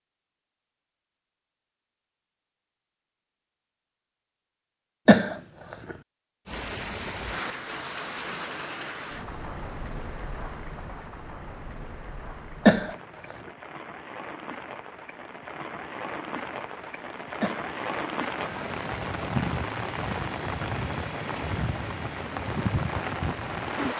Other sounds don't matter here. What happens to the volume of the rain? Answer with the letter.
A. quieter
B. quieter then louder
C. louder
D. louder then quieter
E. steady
B.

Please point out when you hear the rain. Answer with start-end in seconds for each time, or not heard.
6.5-23.9.